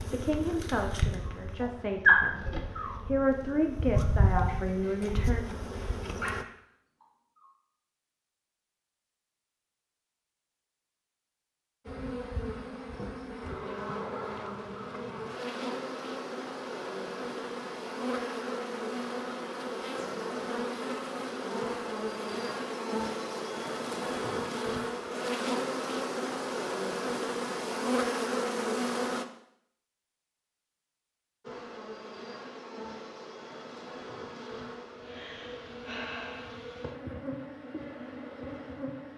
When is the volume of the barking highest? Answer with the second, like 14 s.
2 s.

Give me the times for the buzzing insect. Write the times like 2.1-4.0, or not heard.
0.0-6.5, 11.8-29.2, 31.4-39.1.